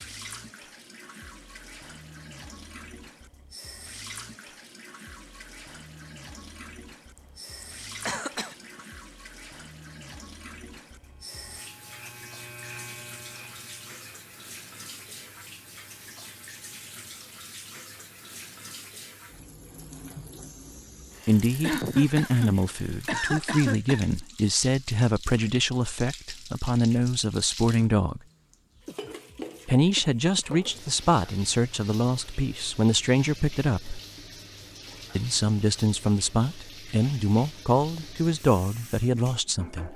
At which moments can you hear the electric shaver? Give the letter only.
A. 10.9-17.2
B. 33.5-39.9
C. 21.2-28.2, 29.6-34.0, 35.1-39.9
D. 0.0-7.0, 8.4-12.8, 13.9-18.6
A.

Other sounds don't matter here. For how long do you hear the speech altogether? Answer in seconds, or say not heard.
16 s.